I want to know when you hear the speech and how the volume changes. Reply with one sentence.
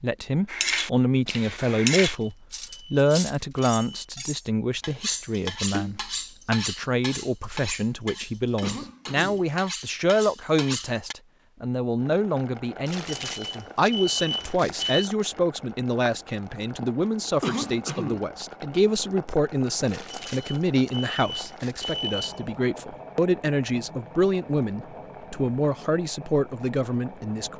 You can hear the speech from 0.0 to 27.5 s, at a steady volume.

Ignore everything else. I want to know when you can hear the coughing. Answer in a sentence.
You can hear the coughing from 8.6 to 9.5 s and from 17.4 to 18.3 s.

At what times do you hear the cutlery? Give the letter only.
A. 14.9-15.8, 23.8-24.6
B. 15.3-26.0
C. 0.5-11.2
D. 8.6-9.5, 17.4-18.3
C.